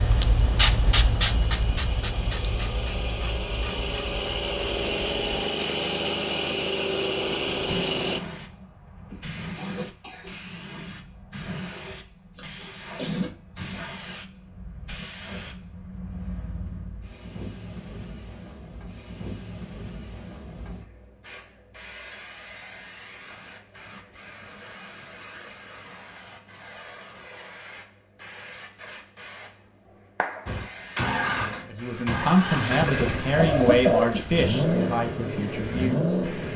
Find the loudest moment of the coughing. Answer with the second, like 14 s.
34 s.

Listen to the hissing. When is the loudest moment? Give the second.
1 s.